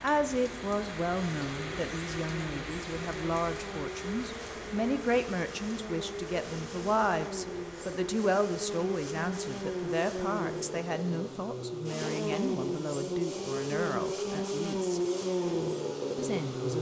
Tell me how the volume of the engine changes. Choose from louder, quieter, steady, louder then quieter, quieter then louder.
louder.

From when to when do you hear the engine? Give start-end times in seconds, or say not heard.
0.2-16.7.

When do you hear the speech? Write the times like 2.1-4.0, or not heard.
0.0-15.0, 16.1-16.7.